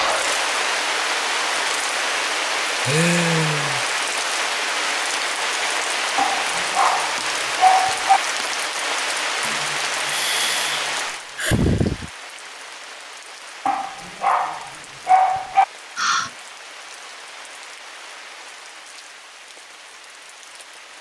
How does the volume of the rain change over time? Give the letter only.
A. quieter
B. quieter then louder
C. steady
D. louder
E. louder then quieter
A.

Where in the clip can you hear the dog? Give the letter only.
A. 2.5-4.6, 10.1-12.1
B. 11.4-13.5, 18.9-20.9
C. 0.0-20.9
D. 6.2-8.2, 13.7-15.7
D.